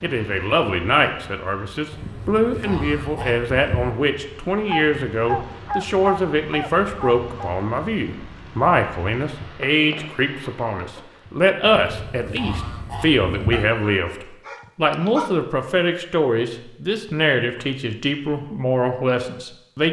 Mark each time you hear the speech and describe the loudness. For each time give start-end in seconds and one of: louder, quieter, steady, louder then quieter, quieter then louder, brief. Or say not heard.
0.0-19.8 steady.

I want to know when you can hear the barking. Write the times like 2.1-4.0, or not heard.
4.7-7.5, 13.5-15.3.